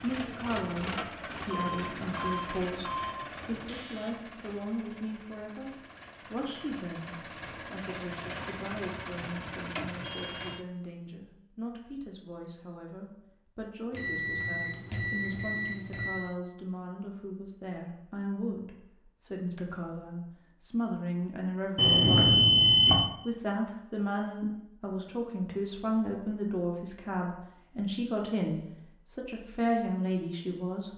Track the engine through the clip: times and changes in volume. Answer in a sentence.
You can hear the engine from 0.0 to 10.7 s, getting quieter then louder.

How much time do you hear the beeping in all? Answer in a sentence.
You can hear the beeping for 6 seconds altogether.